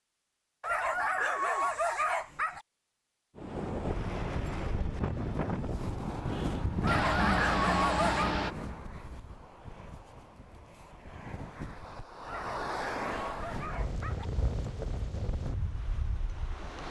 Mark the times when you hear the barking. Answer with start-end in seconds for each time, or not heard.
0.6-2.6, 6.8-8.3, 12.2-14.3.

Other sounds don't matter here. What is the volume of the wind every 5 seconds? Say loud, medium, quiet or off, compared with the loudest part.
loud, loud, loud, medium.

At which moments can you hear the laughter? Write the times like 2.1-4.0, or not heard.
6.8-8.6.